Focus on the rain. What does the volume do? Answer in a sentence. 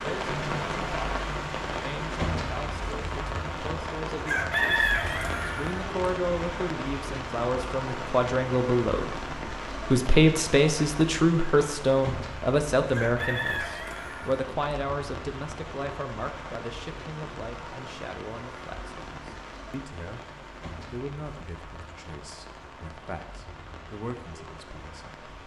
The loudness of the rain goes down.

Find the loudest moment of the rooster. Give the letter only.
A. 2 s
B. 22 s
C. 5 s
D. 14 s
C.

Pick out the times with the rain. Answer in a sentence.
You can hear the rain from 0.0 to 25.4 s.